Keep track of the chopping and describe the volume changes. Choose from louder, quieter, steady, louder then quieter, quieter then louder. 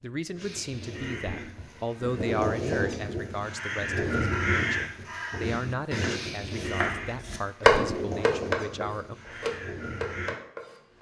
louder then quieter.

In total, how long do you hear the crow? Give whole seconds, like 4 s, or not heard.
10 s.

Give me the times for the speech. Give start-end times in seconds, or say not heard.
0.0-9.2.